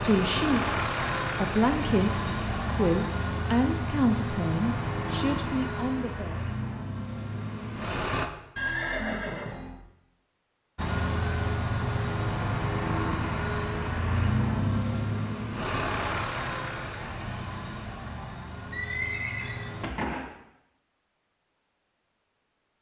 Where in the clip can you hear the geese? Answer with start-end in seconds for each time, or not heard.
not heard.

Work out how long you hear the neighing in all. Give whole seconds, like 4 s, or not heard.
3 s.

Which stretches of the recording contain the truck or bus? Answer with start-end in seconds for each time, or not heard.
0.0-8.3, 10.8-19.9.